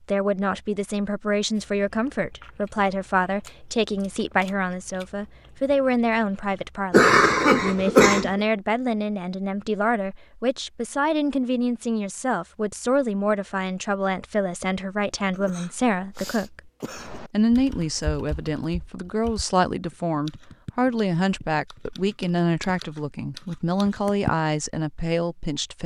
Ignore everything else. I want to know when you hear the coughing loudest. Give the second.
7 s.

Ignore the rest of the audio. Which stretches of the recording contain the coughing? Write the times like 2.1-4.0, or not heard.
6.9-8.4, 15.3-17.2.